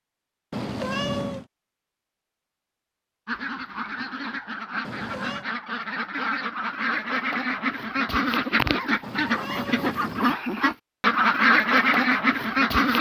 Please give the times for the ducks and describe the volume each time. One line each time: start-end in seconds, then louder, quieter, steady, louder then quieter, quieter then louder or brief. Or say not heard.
3.2-12.9 louder.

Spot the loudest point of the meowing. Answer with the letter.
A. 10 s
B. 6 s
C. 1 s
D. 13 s
C.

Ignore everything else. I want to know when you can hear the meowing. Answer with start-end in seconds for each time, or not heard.
0.5-1.4, 4.8-5.5, 9.0-10.3.